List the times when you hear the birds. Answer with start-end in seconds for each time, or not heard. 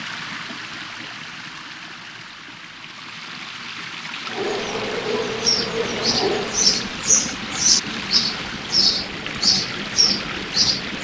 5.2-10.9.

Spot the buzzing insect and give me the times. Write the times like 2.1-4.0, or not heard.
4.2-6.8.